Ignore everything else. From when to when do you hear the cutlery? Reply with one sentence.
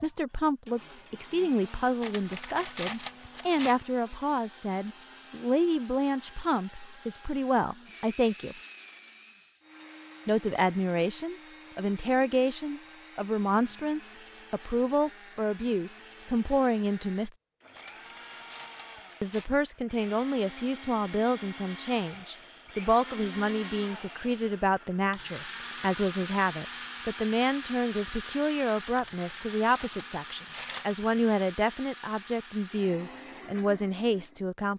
The cutlery can be heard from 2.0 to 3.8 s, from 17.8 to 19.5 s and from 28.9 to 30.9 s.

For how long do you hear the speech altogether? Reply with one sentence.
You can hear the speech for 31 seconds altogether.